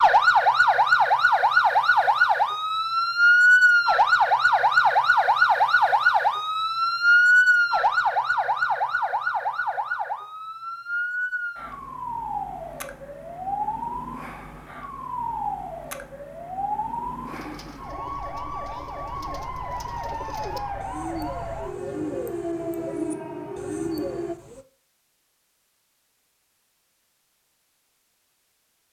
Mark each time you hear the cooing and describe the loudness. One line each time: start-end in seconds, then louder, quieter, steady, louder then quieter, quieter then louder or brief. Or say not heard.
17.2-24.6 louder.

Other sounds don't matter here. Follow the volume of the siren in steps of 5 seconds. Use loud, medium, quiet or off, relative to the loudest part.
loud, loud, quiet, quiet, quiet, off.